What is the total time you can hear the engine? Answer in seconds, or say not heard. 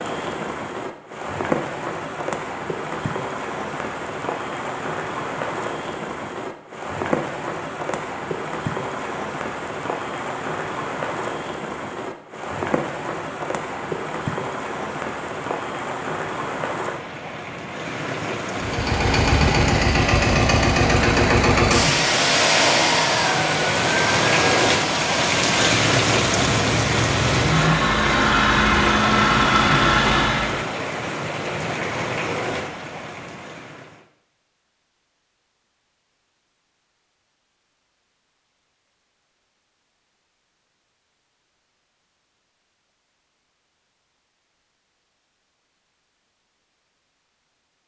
12 s.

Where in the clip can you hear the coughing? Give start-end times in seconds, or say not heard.
not heard.